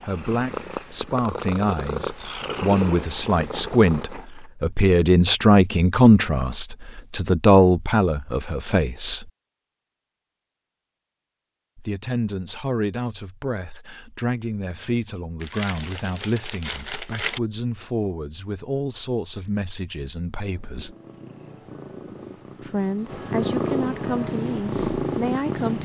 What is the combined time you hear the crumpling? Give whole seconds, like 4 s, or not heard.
2 s.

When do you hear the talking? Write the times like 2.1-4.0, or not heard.
0.0-9.3, 11.8-20.9, 22.6-25.8.